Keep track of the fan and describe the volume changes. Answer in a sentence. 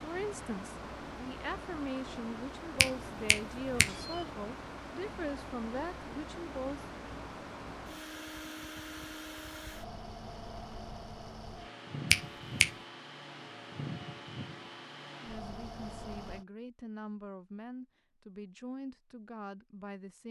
The loudness of the fan stays about the same.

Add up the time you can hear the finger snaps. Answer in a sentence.
You can hear the finger snaps for 2 seconds altogether.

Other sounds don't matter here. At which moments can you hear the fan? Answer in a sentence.
You can hear the fan from 0.0 to 16.4 s.